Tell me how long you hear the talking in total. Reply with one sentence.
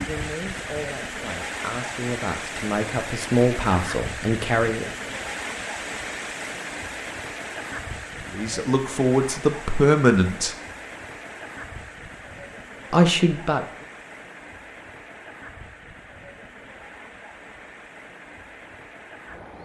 You can hear the talking for 8 seconds altogether.